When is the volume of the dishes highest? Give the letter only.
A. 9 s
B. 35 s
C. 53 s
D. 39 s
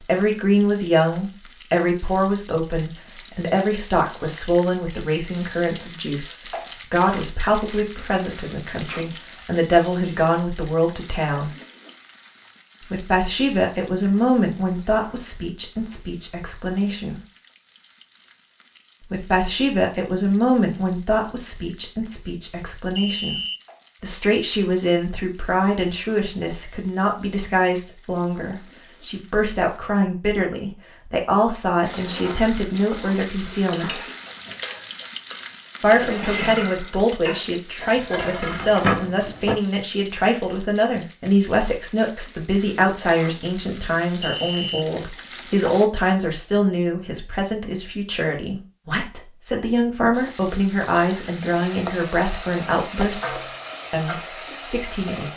D.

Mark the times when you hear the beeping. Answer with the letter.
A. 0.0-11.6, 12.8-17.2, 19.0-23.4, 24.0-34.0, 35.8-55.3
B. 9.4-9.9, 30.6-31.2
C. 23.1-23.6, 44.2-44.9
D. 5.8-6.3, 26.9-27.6
C.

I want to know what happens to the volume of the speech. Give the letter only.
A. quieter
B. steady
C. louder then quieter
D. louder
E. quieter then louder
B.